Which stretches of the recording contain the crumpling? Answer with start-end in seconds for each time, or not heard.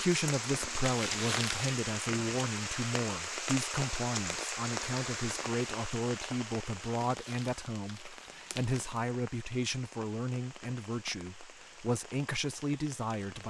0.8-1.8, 7.0-9.0.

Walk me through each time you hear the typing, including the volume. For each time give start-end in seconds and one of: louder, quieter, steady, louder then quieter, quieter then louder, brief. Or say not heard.
not heard.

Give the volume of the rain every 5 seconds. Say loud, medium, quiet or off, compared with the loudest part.
loud, medium, quiet.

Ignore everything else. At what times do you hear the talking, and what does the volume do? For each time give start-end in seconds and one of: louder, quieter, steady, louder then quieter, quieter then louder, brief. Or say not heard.
0.0-13.4 steady.